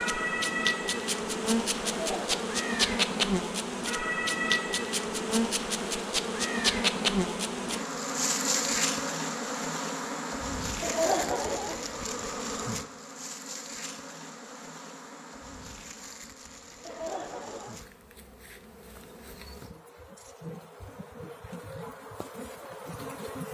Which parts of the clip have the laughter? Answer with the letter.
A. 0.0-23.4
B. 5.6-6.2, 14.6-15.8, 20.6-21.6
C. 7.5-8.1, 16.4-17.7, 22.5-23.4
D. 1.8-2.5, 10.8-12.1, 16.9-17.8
D.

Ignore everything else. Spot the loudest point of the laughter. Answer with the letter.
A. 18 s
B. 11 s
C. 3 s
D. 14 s
B.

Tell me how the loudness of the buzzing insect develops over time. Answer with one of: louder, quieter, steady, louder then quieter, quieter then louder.
quieter.